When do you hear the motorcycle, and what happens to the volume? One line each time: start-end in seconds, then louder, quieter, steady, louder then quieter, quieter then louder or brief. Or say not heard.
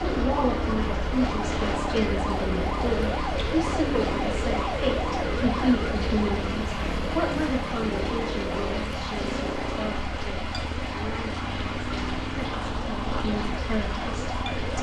0.0-14.7 steady.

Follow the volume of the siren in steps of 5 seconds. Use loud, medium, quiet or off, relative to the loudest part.
loud, loud, medium.